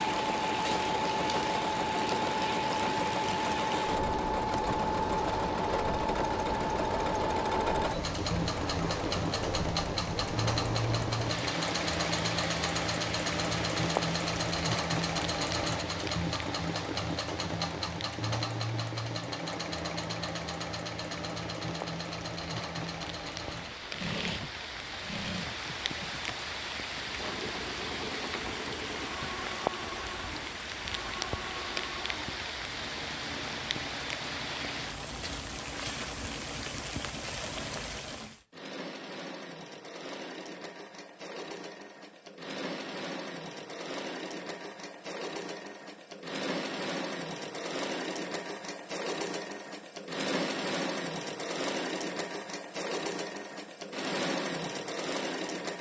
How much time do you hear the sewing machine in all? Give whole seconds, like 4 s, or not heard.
56 s.